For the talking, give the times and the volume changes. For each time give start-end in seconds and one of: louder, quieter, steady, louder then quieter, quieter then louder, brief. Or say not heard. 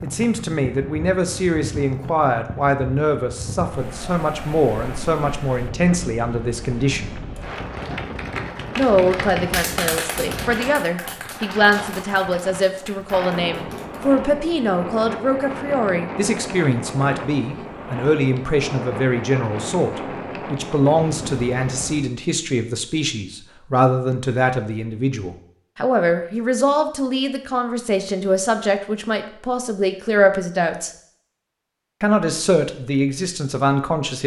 0.0-7.2 steady
8.8-30.9 steady
32.0-34.2 brief.